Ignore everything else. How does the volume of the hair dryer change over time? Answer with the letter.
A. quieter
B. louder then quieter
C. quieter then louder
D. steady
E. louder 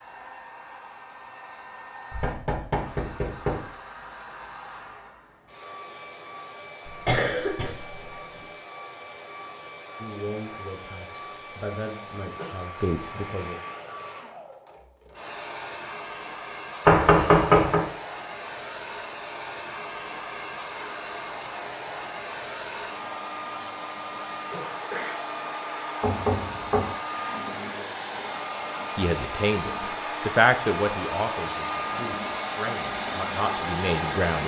E.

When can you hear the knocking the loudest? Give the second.
17 s.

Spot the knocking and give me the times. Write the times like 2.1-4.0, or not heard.
2.1-3.6, 16.9-17.9, 26.0-26.9.